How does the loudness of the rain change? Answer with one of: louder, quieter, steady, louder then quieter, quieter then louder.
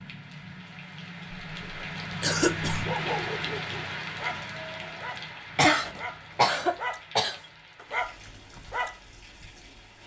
louder then quieter.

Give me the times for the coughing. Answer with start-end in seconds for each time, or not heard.
2.2-2.9, 5.5-7.3.